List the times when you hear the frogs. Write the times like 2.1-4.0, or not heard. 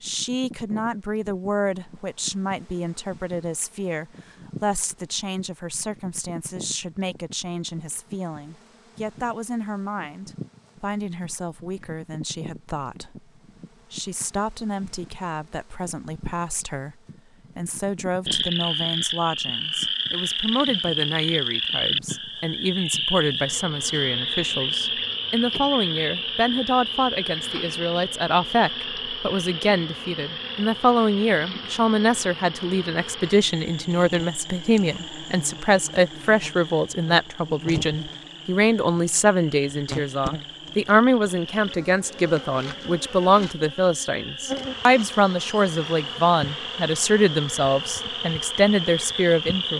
18.2-49.7.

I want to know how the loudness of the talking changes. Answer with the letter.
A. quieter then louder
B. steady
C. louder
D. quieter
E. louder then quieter
C.